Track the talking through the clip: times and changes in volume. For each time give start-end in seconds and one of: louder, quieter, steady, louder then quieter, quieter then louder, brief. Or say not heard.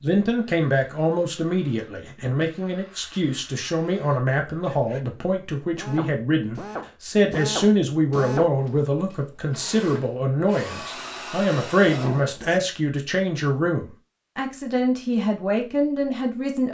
0.0-16.6 steady.